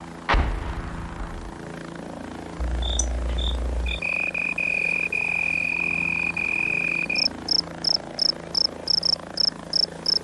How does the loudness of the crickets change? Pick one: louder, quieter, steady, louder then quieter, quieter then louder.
louder.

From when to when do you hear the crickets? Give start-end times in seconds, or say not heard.
2.5-10.1.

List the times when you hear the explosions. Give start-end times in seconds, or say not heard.
0.2-1.5.